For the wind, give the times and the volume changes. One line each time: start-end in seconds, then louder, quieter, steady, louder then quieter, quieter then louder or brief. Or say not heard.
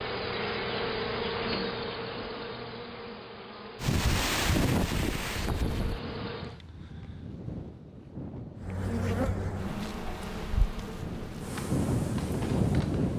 3.8-13.1 quieter then louder.